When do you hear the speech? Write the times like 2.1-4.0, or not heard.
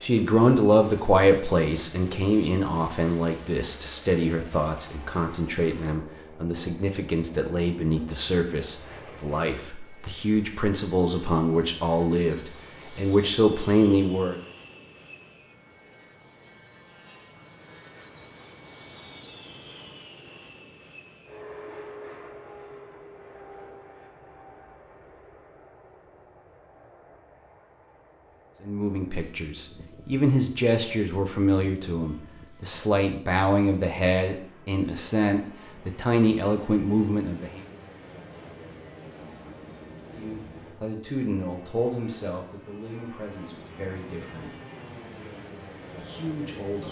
0.0-14.4, 28.6-37.6, 40.1-44.5, 46.0-46.8.